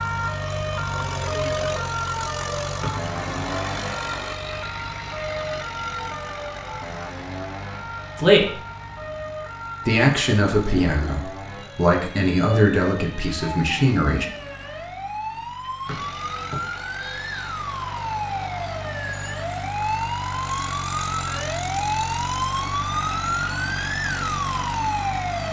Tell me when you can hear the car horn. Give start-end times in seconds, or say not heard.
not heard.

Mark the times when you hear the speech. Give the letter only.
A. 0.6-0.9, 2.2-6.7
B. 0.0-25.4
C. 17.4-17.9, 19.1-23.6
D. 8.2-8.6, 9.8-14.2
D.